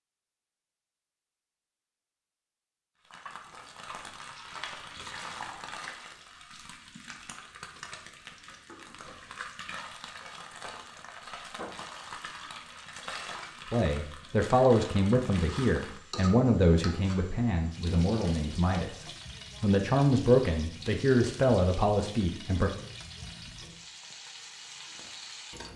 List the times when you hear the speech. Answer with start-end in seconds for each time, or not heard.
13.7-22.7.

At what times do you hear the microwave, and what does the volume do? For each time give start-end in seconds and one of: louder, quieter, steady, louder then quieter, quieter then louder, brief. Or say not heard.
not heard.